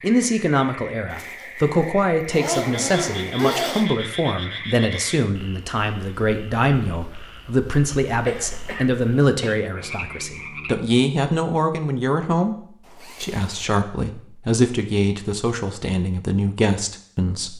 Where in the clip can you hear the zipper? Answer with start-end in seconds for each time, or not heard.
1.1-3.9, 8.5-8.9, 12.8-13.8.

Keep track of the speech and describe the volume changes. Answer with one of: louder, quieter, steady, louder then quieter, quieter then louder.
steady.